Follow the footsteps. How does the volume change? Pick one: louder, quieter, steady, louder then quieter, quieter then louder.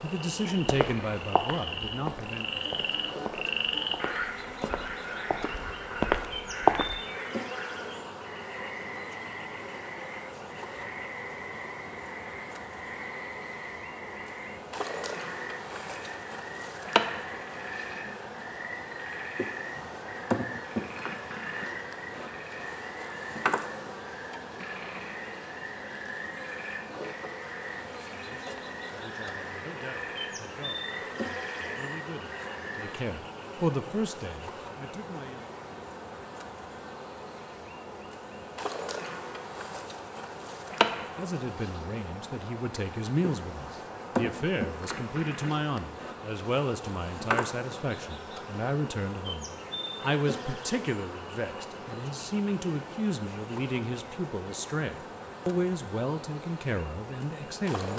quieter then louder.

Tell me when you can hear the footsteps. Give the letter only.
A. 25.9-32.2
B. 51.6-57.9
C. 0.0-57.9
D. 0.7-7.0
D.